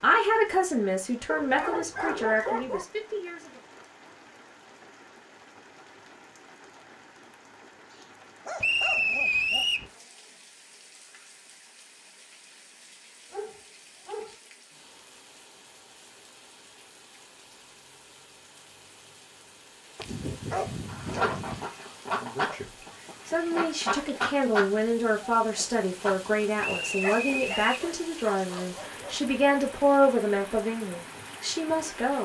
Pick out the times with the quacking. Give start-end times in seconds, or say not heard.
20.9-27.4.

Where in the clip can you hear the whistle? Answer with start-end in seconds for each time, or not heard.
8.6-9.9, 26.6-27.9.